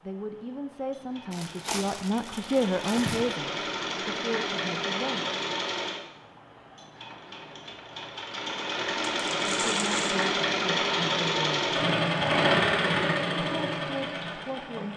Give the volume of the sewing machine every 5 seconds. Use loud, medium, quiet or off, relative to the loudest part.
medium, medium, loud.